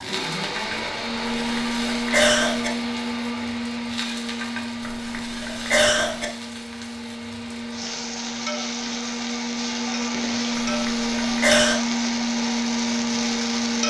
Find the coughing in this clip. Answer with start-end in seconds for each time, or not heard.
1.2-2.7, 4.8-6.2, 10.6-11.8.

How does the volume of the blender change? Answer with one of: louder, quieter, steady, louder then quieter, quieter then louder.
quieter then louder.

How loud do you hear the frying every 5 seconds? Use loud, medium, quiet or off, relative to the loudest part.
medium, medium, loud.